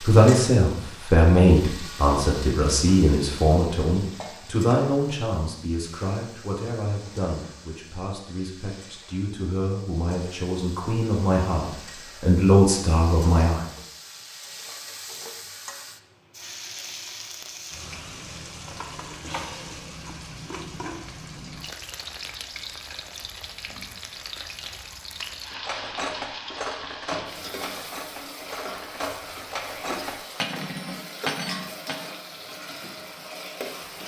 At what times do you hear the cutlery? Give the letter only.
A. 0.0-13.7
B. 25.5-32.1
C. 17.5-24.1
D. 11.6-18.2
B.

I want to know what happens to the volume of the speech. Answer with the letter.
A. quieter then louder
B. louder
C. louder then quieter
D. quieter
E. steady
A.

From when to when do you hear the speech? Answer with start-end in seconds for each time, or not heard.
0.0-13.7.